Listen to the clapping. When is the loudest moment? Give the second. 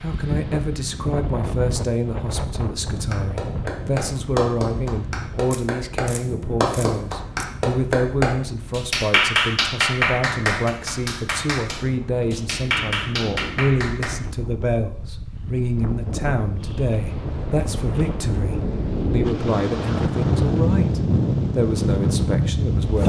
9 s.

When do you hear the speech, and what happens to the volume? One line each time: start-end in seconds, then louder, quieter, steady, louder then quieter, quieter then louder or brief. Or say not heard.
0.0-23.0 steady.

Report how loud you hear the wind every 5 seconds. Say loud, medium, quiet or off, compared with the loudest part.
medium, quiet, quiet, medium, loud.